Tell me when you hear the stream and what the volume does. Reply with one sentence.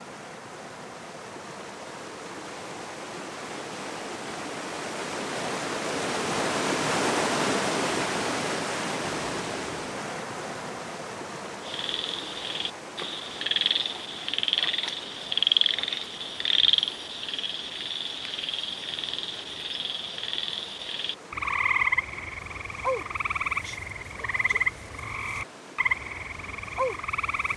You can hear the stream from 0.0 to 27.5 s, getting louder then quieter.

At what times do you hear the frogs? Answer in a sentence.
The frogs can be heard from 11.7 to 27.5 s.